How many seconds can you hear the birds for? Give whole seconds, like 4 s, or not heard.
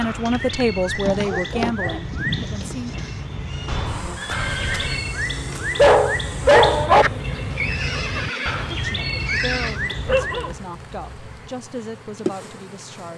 11 s.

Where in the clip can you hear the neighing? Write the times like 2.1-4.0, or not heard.
3.6-5.0, 7.5-9.8.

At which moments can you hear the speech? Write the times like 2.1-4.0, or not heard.
0.0-3.0, 8.7-13.1.